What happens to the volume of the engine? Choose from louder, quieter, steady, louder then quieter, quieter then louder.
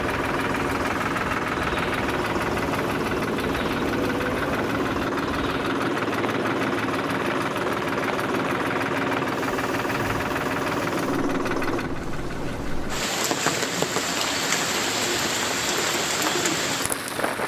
quieter.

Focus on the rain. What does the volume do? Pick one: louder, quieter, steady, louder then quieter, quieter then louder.
louder.